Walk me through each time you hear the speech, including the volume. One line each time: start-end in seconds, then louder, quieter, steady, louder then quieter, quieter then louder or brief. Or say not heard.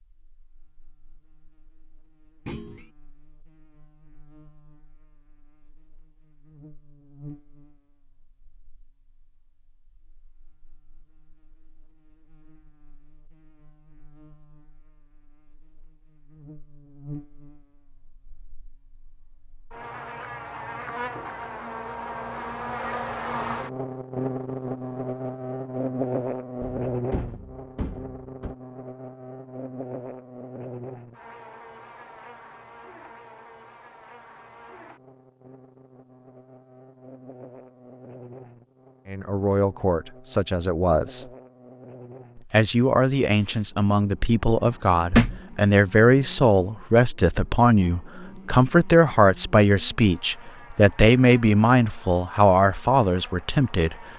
39.0-41.3 brief
42.4-54.1 steady.